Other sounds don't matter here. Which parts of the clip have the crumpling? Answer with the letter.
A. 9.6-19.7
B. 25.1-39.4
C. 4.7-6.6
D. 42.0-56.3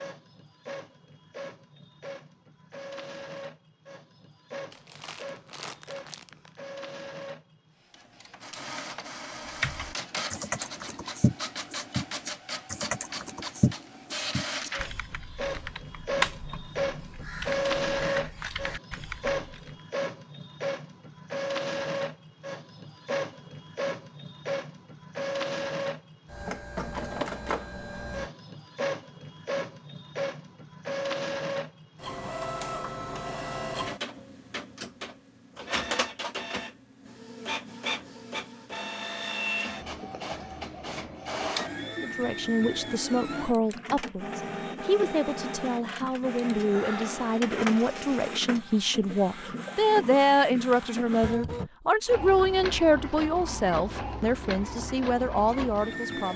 C.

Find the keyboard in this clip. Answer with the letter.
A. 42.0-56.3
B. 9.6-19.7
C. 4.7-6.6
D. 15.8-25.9
B.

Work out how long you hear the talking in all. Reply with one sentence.
You can hear the talking for 14 seconds altogether.